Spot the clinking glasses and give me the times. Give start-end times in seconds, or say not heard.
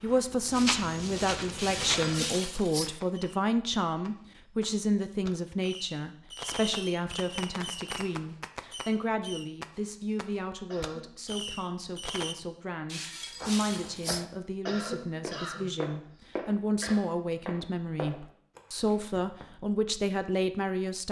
1.6-2.9, 12.8-14.2.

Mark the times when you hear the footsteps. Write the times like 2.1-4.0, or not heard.
0.0-2.3, 13.3-19.4.